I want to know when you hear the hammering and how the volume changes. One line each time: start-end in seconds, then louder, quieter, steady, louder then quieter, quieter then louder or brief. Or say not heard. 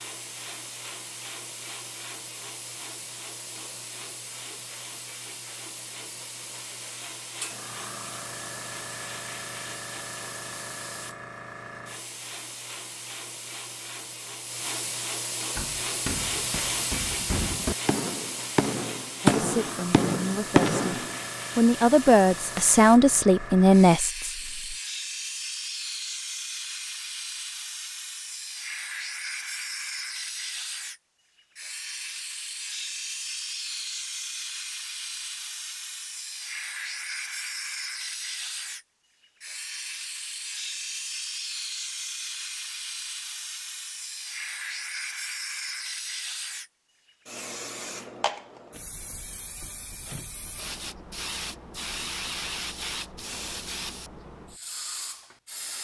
15.6-21.2 louder.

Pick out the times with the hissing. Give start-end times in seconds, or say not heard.
0.0-55.7.